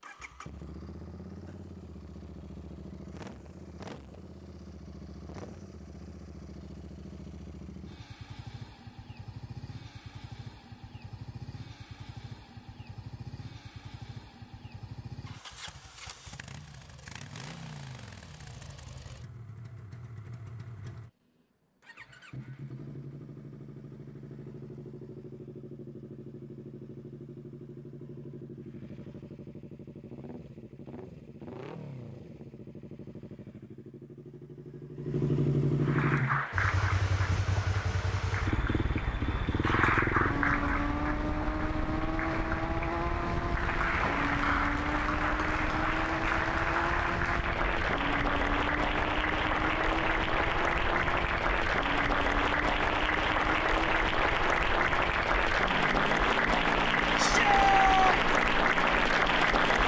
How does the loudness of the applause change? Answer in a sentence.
The loudness of the applause goes up.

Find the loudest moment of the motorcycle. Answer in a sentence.
The volume of the motorcycle peaks at 36 seconds.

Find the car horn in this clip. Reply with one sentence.
The car horn can't be heard in this clip.